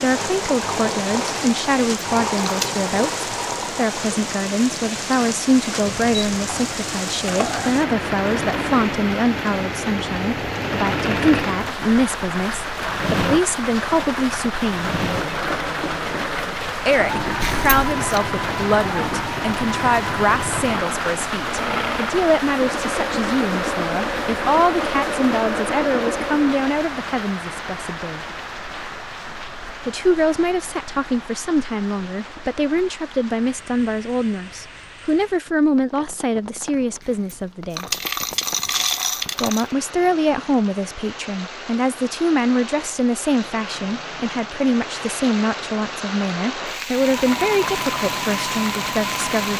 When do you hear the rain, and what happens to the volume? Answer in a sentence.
You can hear the rain from 0.0 to 49.5 s, getting quieter then louder.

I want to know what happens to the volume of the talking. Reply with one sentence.
The loudness of the talking stays about the same.